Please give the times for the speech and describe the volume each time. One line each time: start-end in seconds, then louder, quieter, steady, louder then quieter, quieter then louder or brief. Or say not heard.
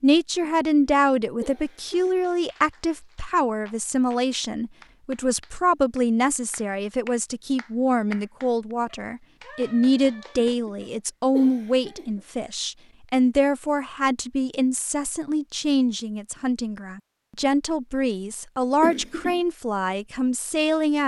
0.0-21.0 steady.